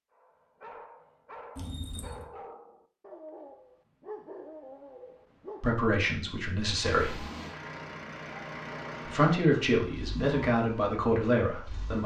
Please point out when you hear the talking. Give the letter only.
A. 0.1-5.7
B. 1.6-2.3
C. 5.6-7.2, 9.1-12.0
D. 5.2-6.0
C.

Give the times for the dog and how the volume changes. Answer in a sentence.
You can hear the dog from 0.1 to 5.7 s, at a steady volume.